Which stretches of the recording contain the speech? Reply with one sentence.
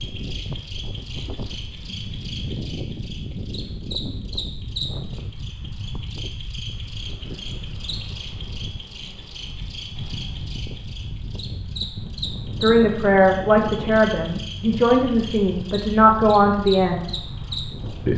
The speech can be heard from 12.6 to 17.0 s.